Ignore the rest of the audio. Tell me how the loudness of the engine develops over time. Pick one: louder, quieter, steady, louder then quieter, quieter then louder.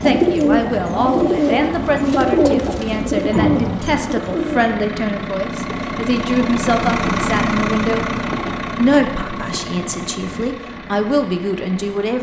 louder then quieter.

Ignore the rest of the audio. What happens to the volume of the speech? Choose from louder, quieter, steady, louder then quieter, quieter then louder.
steady.